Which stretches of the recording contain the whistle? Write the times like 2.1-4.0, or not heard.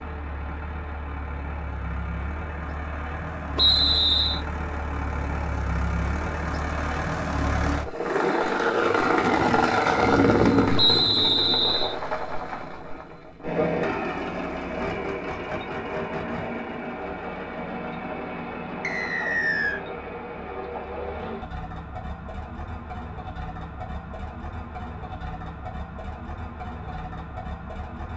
3.5-4.4, 10.8-11.9, 18.8-19.8.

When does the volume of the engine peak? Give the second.
10 s.